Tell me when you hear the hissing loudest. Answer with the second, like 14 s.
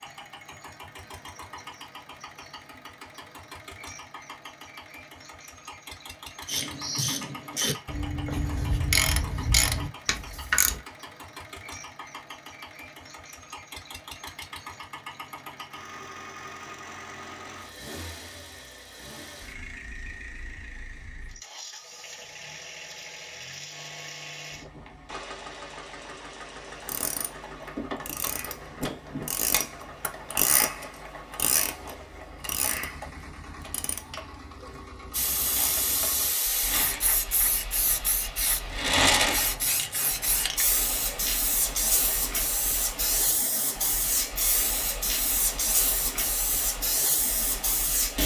39 s.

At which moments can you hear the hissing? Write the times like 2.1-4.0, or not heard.
35.1-48.2.